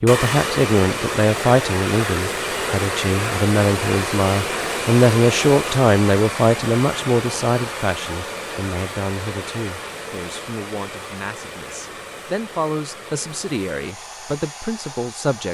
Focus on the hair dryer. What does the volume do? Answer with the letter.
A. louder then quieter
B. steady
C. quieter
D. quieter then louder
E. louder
C.